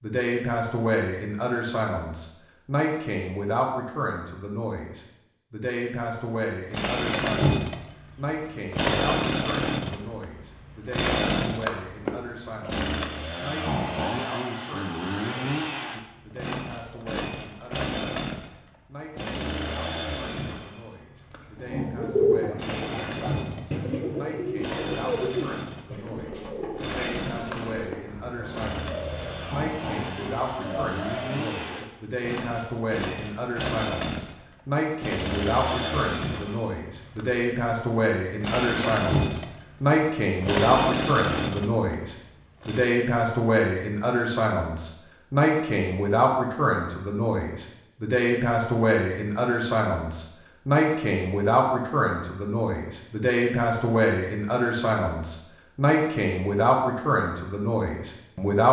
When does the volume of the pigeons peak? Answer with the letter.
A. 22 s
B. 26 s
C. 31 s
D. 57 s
A.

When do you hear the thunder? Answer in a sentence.
You can't hear the thunder here.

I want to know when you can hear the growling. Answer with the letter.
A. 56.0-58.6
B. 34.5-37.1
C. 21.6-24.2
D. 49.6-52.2
C.